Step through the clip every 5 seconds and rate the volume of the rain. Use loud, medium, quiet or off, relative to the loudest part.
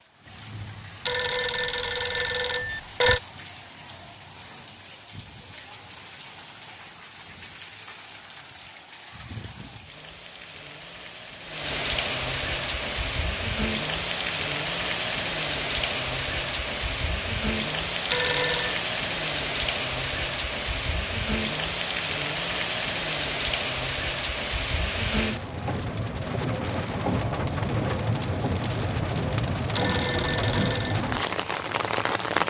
quiet, quiet, loud, loud, loud, loud, loud.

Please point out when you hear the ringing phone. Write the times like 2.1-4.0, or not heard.
1.1-3.2, 18.1-18.8, 29.8-31.1.